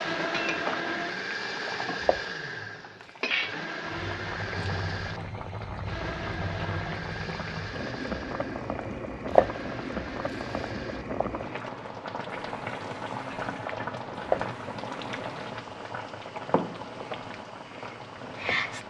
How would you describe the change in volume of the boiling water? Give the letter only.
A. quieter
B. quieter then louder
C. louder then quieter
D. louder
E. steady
E.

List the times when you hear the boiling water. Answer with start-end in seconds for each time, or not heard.
0.0-18.8.